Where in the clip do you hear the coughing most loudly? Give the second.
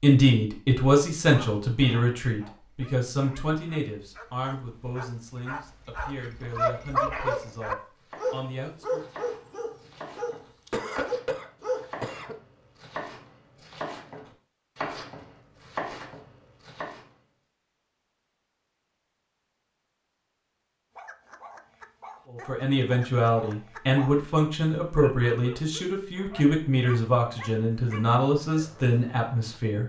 11 s.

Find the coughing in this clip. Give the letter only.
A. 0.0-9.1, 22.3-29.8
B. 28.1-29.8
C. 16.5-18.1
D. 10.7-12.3
D.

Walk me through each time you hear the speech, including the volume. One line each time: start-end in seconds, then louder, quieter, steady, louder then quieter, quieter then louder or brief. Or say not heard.
0.0-9.1 quieter
22.3-29.8 steady.